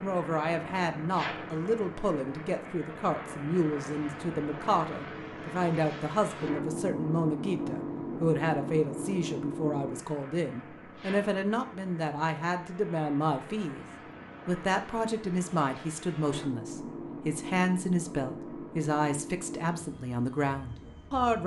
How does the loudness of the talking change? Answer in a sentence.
The volume of the talking stays about the same.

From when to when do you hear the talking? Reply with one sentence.
You can hear the talking from 0.0 to 13.8 s and from 14.4 to 21.4 s.